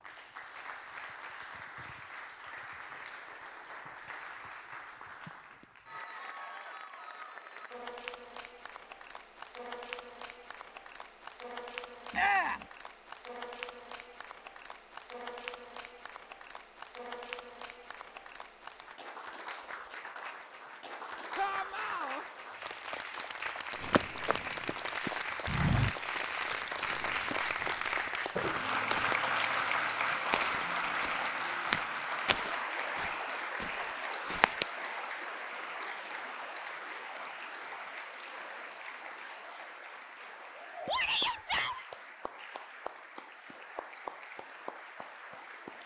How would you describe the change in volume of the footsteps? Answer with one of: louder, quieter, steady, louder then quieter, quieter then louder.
steady.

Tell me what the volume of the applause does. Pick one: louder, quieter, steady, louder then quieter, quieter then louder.
louder then quieter.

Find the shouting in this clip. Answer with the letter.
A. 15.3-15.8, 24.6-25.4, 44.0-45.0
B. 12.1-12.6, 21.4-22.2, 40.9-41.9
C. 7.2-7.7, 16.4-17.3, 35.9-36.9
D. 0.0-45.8
B.